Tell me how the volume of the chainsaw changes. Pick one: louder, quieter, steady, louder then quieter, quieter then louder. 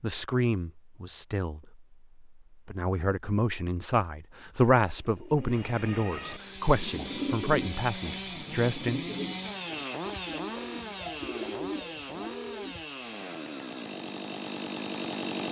steady.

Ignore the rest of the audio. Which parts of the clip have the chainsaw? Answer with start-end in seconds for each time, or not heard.
6.2-15.4.